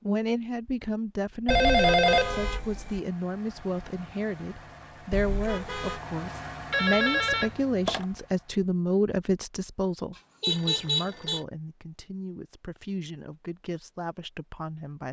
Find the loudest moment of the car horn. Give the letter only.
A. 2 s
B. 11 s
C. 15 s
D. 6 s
B.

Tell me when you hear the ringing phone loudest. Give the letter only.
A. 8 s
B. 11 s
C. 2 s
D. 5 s
C.